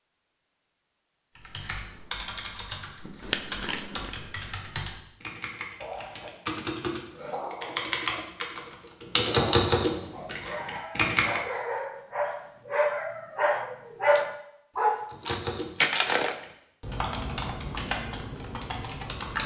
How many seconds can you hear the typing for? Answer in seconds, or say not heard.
14 s.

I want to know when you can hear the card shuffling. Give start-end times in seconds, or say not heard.
3.2-4.1, 15.2-16.4.